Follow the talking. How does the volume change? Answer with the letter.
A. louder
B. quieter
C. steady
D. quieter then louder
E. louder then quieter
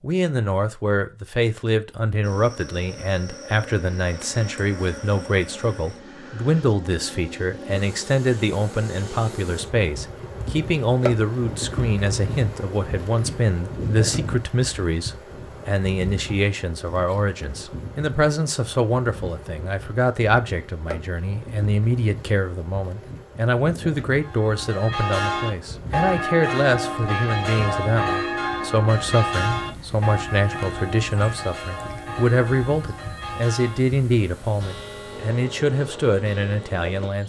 C.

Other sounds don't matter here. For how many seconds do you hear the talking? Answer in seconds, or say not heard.
37 s.